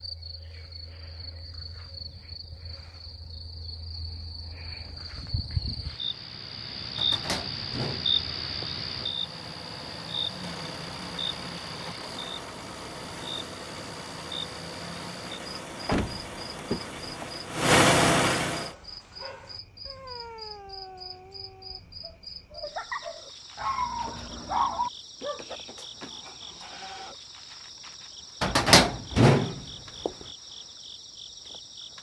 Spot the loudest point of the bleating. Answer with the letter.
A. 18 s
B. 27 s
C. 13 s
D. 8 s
B.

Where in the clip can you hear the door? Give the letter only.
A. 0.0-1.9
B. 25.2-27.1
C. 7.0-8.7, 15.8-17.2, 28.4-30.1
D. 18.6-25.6
C.